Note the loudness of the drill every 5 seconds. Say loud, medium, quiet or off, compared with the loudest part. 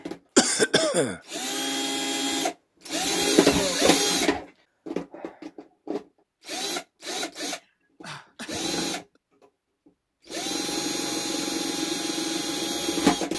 loud, medium, loud.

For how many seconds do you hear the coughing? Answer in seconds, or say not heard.
3 s.